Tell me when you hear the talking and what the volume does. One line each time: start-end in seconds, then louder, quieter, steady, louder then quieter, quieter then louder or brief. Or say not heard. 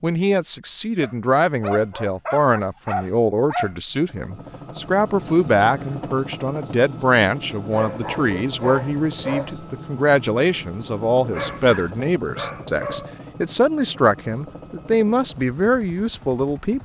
0.0-16.8 steady.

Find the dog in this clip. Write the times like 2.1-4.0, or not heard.
1.0-3.8, 7.7-9.6, 11.3-13.2.